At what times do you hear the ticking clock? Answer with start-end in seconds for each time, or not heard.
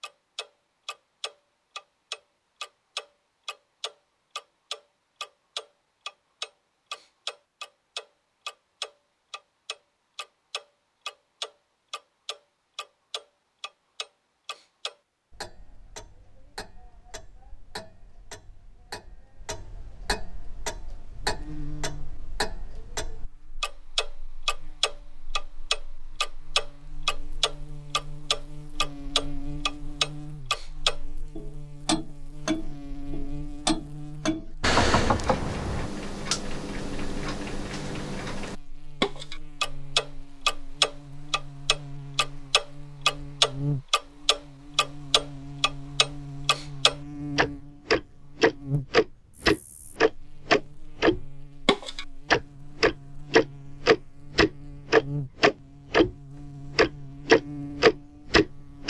0.0-56.1, 56.8-58.8.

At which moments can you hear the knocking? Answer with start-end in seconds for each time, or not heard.
34.6-35.9.